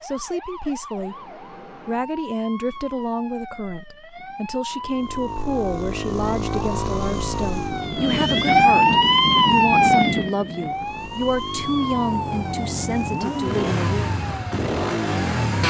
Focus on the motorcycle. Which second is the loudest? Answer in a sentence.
The volume of the motorcycle peaks at 15 seconds.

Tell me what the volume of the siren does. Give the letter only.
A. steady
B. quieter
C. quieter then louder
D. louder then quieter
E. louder
D.